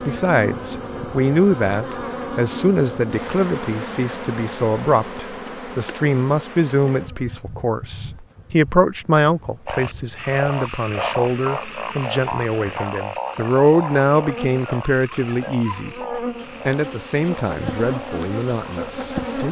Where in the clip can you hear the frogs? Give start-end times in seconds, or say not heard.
9.7-19.4.